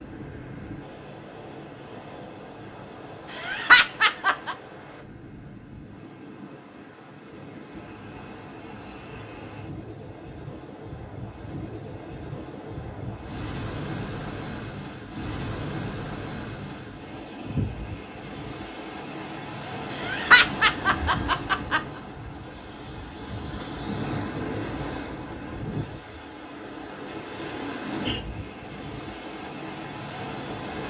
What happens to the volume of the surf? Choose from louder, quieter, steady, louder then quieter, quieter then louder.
louder.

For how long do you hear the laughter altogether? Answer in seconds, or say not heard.
3 s.